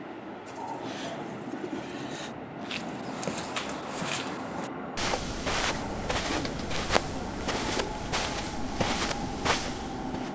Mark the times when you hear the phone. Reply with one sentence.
You can't hear the phone here.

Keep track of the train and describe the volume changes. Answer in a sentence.
The loudness of the train stays about the same.